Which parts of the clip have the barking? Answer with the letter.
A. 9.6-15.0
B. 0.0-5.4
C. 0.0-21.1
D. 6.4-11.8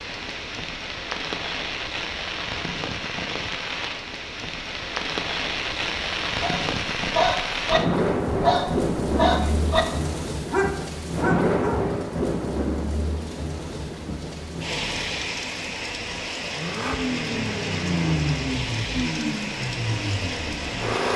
D.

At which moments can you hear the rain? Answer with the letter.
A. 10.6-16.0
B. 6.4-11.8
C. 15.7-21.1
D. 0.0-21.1
D.